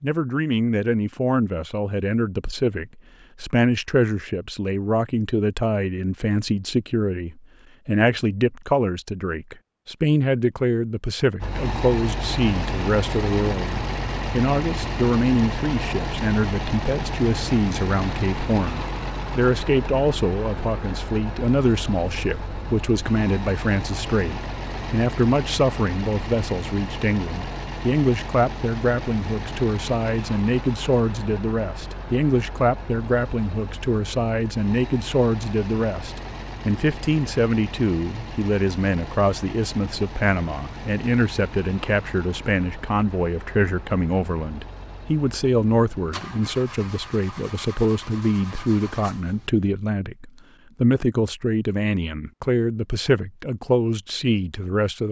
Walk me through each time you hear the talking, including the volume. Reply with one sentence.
The talking can be heard from 0.0 to 55.0 s, at a steady volume.